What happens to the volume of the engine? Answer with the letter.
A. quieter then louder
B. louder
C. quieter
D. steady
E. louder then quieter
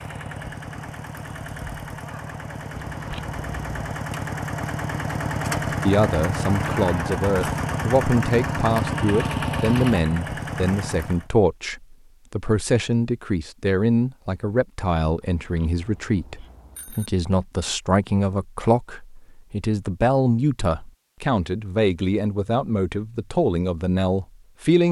B.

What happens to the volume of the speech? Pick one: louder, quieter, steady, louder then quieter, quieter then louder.
steady.